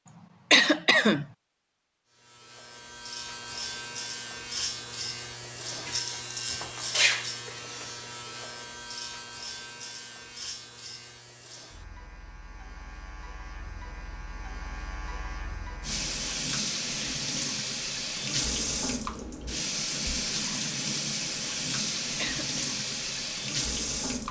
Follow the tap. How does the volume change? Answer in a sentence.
The volume of the tap stays about the same.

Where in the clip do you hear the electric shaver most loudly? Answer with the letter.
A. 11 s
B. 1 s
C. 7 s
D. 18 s
C.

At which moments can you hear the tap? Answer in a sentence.
The tap can be heard from 15.8 to 24.2 s.